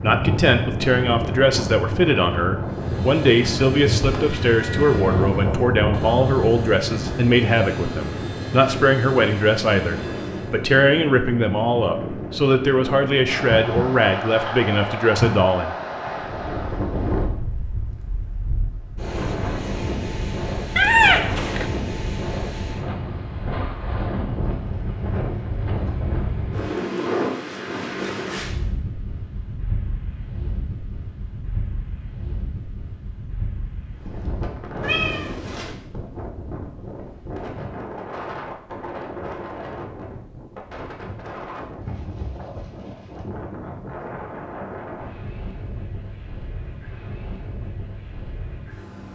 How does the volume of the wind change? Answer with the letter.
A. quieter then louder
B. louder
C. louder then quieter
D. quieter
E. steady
D.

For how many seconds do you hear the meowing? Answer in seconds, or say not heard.
3 s.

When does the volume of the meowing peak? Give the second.
21 s.